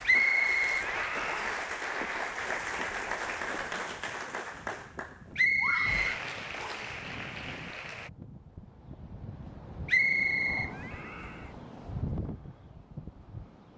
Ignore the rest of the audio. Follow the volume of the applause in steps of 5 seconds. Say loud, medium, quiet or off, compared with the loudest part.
loud, medium, off.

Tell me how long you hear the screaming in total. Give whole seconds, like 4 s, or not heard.
2 s.